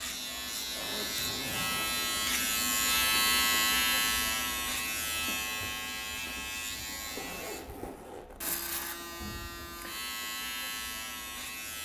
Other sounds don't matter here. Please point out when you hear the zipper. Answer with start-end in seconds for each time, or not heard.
0.8-2.0, 7.0-8.4.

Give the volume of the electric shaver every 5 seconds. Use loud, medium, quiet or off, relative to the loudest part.
loud, medium, medium.